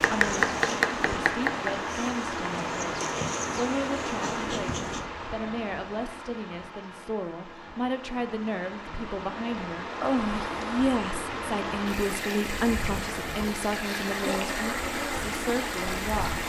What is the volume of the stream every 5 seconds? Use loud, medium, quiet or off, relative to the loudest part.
loud, medium, loud, loud.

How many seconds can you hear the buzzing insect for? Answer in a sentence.
The buzzing insect can be heard for 9 seconds in total.